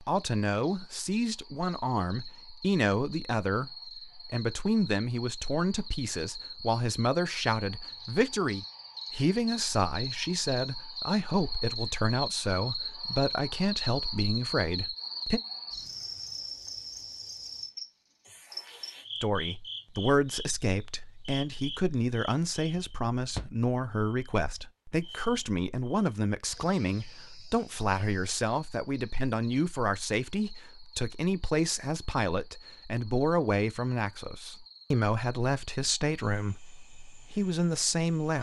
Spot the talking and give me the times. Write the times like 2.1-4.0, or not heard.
0.0-15.4, 19.2-38.3.